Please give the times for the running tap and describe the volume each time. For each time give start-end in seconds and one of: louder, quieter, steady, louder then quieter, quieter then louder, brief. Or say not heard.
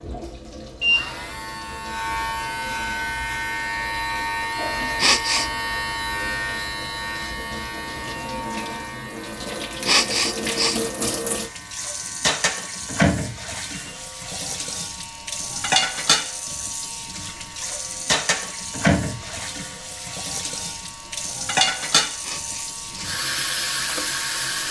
0.0-24.6 louder.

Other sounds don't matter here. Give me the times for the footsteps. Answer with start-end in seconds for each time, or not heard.
not heard.